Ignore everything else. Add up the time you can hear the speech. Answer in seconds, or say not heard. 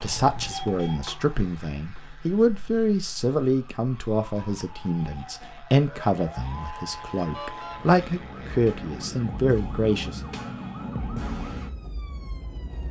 10 s.